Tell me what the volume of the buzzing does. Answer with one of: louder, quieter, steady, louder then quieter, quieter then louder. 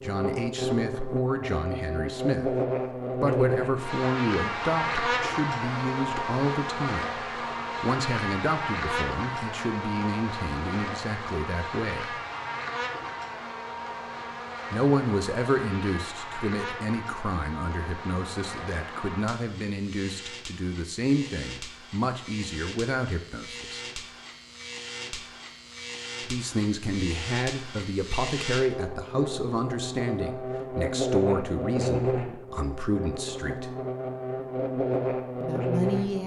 quieter then louder.